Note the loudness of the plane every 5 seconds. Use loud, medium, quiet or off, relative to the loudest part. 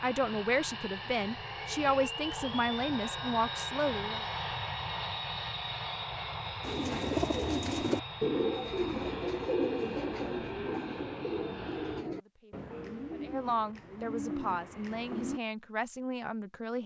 loud, loud, medium, off.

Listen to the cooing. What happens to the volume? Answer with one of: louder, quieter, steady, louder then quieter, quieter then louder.
quieter.